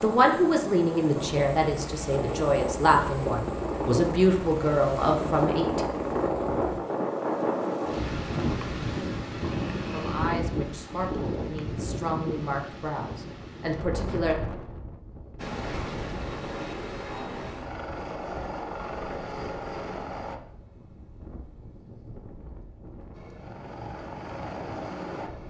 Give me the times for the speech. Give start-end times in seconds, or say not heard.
0.0-5.8, 9.9-14.3.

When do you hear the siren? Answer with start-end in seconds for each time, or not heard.
not heard.